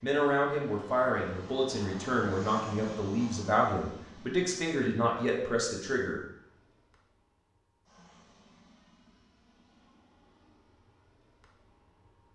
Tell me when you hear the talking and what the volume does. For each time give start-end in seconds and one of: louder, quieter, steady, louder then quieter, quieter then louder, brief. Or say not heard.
0.0-6.2 steady.